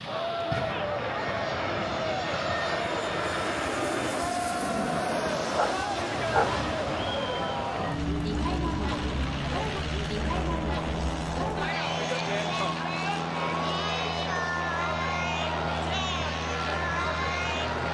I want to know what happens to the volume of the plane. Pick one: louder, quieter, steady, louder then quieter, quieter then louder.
steady.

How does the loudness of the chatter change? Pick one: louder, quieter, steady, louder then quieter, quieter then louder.
steady.